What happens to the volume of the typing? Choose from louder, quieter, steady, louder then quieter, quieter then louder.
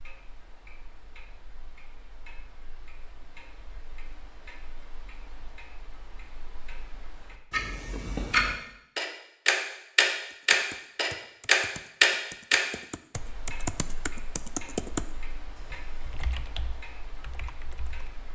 louder then quieter.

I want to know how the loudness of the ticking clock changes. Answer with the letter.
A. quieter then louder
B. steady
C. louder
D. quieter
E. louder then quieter
E.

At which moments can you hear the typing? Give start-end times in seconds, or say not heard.
10.3-18.1.